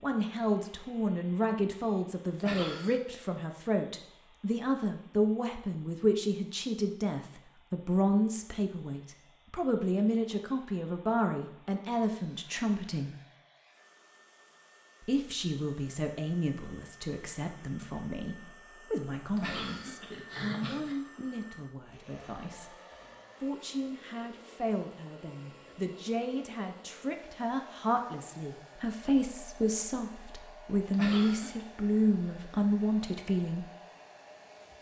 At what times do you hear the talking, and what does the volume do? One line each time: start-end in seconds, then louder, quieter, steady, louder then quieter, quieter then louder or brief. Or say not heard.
0.0-13.2 steady
15.0-22.8 quieter
23.4-33.6 louder.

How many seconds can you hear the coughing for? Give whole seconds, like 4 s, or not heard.
3 s.